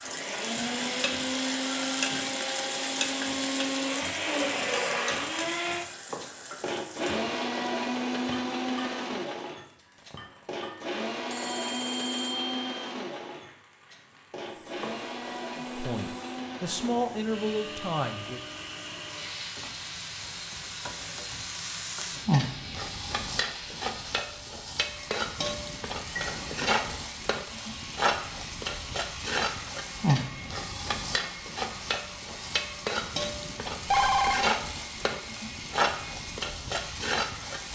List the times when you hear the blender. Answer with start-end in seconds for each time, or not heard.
0.0-37.7.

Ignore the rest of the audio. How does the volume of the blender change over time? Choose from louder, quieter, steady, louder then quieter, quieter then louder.
quieter.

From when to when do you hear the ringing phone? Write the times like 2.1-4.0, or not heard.
11.3-12.8, 33.9-34.5.